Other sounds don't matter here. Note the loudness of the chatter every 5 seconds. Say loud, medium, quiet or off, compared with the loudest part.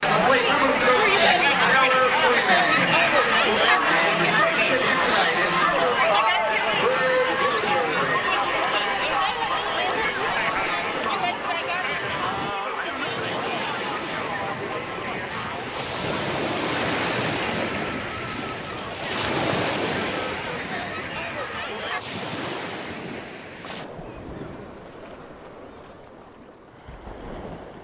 loud, loud, medium, quiet, quiet, off.